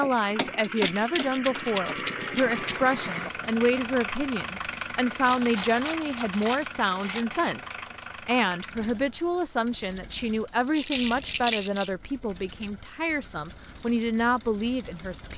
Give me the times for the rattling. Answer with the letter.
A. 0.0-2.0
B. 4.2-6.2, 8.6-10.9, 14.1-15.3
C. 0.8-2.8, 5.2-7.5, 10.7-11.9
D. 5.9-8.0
C.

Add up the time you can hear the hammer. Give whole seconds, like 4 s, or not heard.
2 s.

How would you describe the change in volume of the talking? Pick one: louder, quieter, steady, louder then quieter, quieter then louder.
steady.